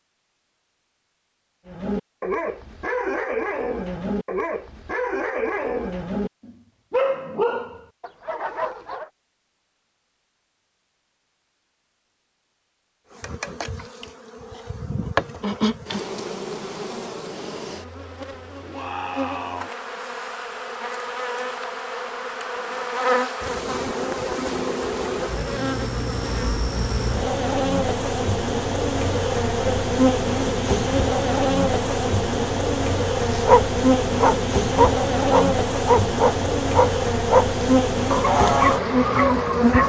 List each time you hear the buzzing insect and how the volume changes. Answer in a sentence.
You can hear the buzzing insect from 13.1 to 39.8 s, getting louder.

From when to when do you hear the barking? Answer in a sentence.
You can hear the barking from 1.6 to 9.1 s and from 33.2 to 39.8 s.